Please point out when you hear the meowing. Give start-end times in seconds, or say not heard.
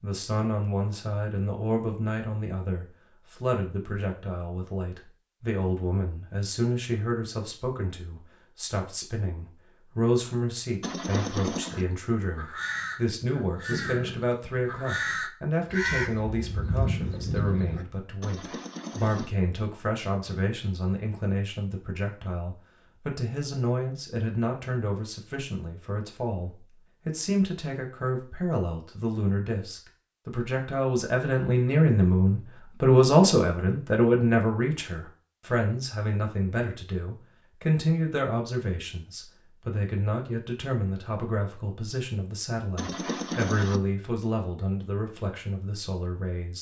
10.8-11.8, 18.2-19.4, 42.8-43.8.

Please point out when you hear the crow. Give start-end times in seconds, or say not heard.
11.7-17.9.